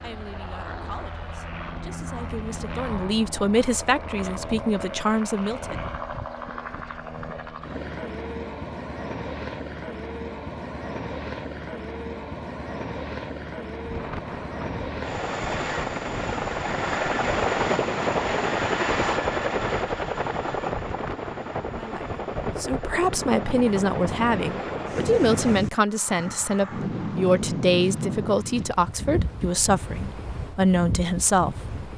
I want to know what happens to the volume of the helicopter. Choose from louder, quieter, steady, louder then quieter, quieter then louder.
louder then quieter.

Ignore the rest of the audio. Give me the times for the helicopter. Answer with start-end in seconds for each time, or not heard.
0.0-25.6.